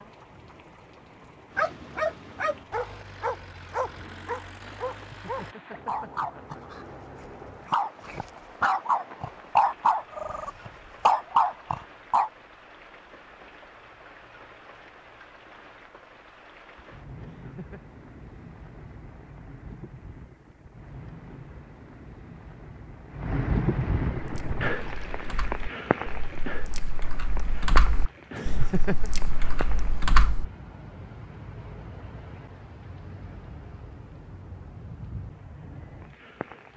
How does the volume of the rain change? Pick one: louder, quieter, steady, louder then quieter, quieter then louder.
louder then quieter.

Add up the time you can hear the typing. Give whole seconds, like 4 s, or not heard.
6 s.